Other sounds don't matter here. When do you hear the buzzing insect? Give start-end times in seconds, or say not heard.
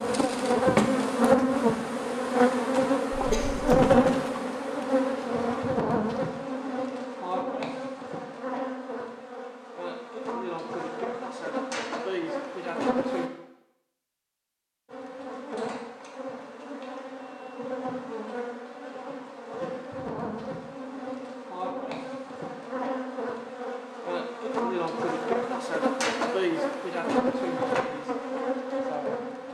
0.0-13.3, 14.8-29.4.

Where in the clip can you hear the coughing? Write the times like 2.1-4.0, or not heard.
3.1-3.9.